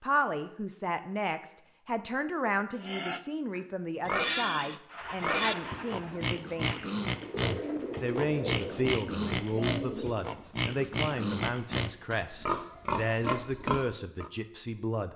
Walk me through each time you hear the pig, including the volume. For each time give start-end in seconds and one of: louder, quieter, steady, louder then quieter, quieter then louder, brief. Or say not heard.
2.8-14.3 steady.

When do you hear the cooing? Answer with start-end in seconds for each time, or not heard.
4.8-10.2.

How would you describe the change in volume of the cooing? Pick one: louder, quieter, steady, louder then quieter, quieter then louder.
quieter then louder.